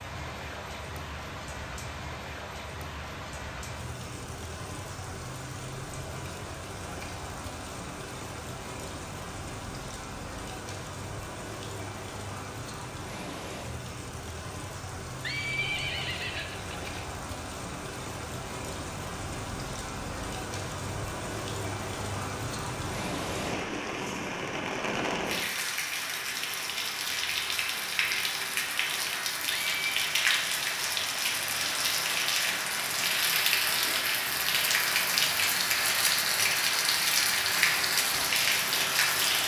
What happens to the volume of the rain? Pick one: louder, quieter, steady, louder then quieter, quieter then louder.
louder.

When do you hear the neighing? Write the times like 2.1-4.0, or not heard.
15.2-17.1, 29.6-30.1.